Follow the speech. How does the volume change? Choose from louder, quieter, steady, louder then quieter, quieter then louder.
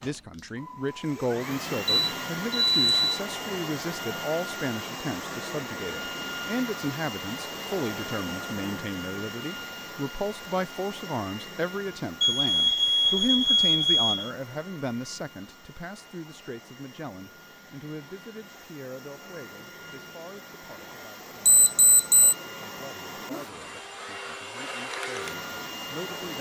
quieter.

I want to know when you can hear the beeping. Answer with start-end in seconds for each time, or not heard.
1.9-3.2, 12.2-14.3, 21.4-22.4.